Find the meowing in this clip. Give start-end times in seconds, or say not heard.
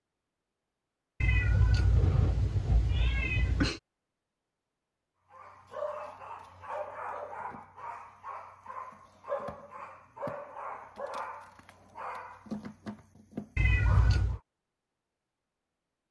1.2-3.8, 13.6-14.4.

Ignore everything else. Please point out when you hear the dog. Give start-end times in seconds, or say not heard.
5.3-14.4.